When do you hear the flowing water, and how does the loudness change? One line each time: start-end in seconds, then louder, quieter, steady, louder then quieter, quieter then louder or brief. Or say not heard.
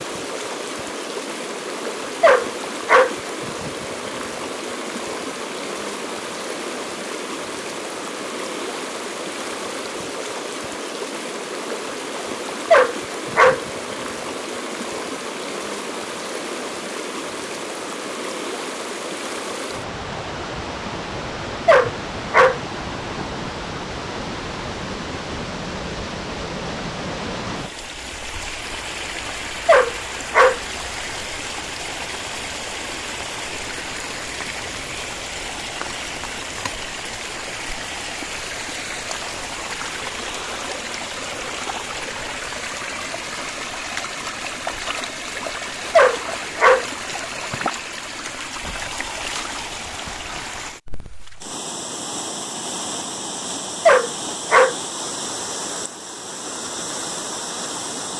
0.0-58.1 steady.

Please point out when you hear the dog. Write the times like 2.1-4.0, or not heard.
2.2-3.1, 12.7-13.6, 21.6-22.6, 29.6-30.6, 46.0-46.9, 53.9-54.8.